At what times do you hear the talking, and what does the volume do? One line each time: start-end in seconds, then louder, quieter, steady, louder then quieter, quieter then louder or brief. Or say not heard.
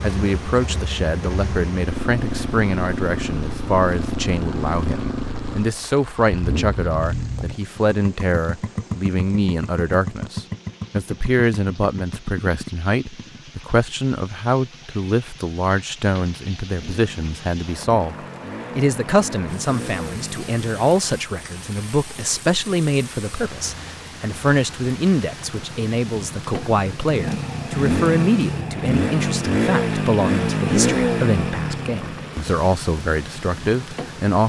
0.0-34.4 steady.